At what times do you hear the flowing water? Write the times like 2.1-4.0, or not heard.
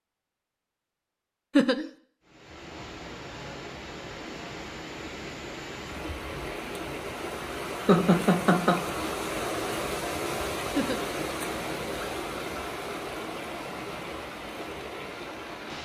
2.2-15.7.